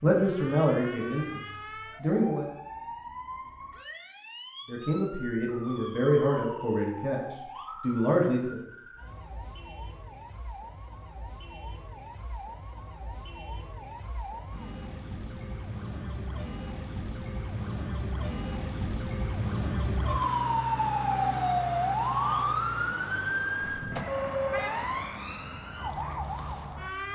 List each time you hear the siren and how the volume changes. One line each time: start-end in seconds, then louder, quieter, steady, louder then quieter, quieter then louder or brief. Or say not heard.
0.0-27.1 louder.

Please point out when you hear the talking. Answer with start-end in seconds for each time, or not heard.
0.0-2.5, 4.7-8.6.